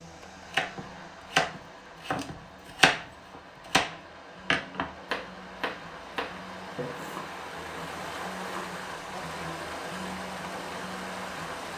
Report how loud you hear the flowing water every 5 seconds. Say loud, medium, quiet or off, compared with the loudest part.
medium, loud, loud.